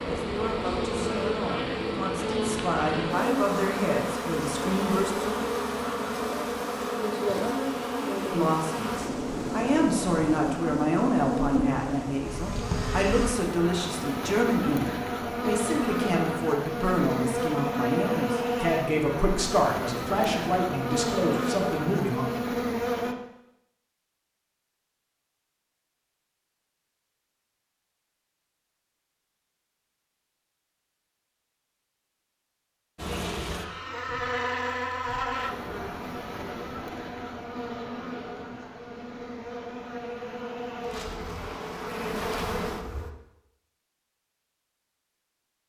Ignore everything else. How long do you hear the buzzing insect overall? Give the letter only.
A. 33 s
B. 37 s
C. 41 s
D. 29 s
A.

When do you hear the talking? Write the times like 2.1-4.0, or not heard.
0.0-5.3, 8.2-22.2.